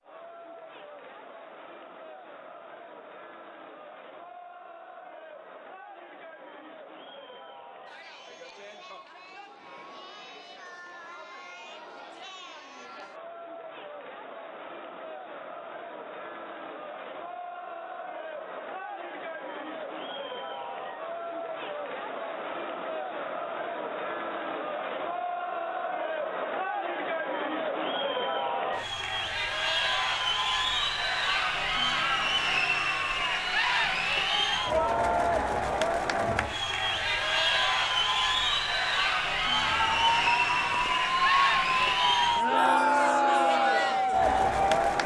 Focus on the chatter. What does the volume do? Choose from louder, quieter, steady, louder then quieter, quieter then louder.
louder.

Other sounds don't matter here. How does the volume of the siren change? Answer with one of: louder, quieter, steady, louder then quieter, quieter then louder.
steady.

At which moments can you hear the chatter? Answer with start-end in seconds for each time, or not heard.
0.0-45.0.